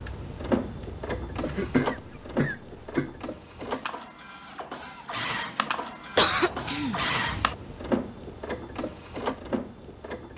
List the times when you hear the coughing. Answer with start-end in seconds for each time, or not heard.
1.4-3.1, 6.2-7.5.